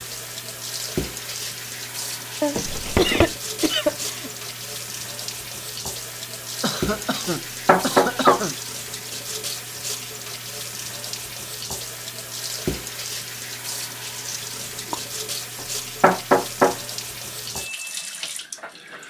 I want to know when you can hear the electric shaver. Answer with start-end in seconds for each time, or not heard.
not heard.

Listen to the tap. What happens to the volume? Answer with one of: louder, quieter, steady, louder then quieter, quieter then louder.
steady.